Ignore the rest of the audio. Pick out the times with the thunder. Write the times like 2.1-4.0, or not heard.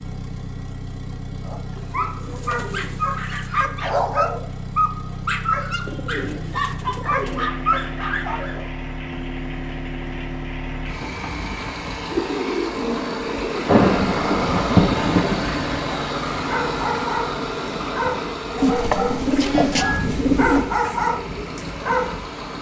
13.7-15.4.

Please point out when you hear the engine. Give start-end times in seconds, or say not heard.
0.0-22.5.